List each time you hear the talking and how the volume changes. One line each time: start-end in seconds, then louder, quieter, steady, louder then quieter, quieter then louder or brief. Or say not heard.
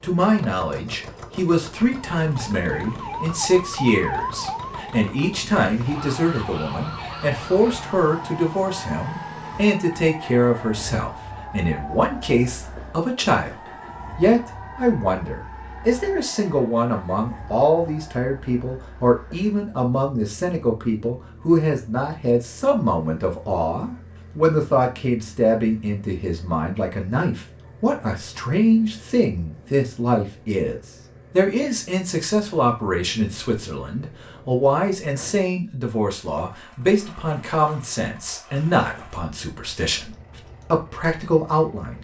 0.0-41.9 steady.